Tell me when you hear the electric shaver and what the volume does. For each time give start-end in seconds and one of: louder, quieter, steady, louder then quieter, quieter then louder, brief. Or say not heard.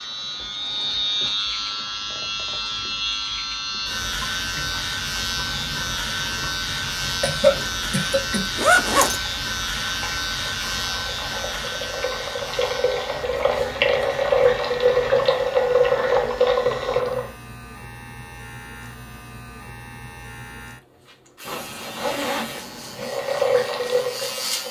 0.0-24.6 quieter.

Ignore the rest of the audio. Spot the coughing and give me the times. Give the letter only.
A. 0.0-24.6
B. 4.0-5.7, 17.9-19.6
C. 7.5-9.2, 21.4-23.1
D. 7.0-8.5
D.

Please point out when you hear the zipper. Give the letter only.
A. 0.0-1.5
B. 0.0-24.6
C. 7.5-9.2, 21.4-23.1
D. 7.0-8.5
C.